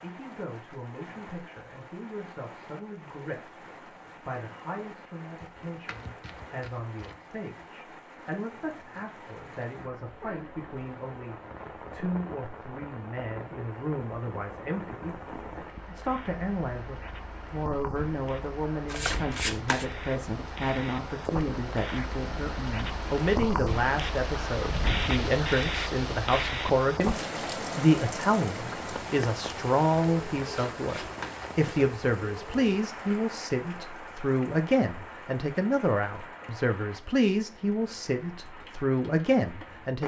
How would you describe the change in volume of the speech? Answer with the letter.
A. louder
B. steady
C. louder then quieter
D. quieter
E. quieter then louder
A.